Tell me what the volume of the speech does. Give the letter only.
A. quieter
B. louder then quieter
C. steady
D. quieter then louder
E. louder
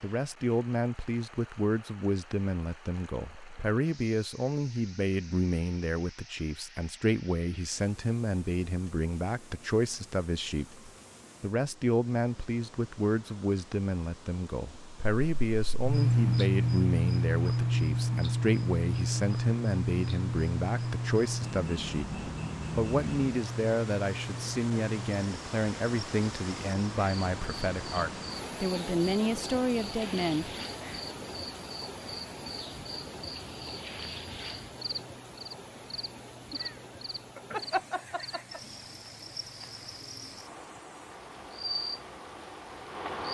C.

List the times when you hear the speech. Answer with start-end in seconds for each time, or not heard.
0.0-30.5.